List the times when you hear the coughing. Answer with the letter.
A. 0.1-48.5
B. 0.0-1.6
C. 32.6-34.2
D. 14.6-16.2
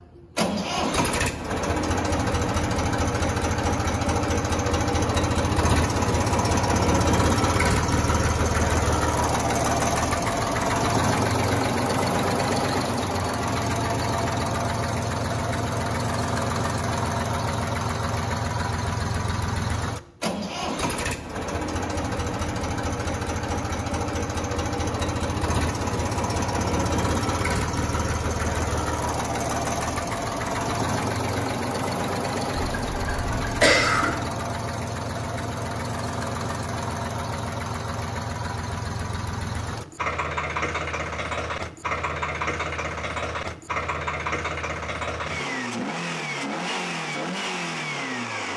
C.